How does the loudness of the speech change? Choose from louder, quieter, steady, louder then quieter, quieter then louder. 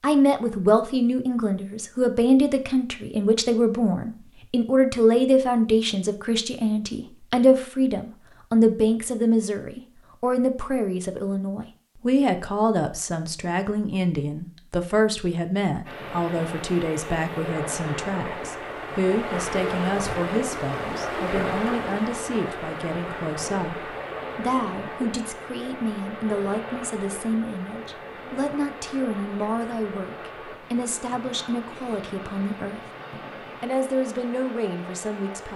quieter.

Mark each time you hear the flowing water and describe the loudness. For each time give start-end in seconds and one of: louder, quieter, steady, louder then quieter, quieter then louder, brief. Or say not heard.
15.8-35.5 quieter.